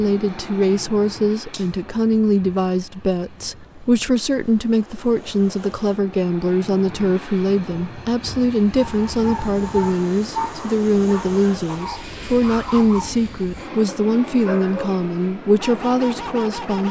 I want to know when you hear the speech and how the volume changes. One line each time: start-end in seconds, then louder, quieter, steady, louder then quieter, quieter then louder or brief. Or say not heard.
0.0-16.8 steady.